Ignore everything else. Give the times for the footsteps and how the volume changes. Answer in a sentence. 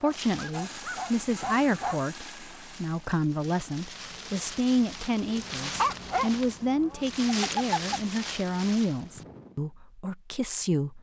You can't hear the footsteps here.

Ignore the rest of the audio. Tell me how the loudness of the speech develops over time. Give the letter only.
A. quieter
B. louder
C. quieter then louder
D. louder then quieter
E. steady
E.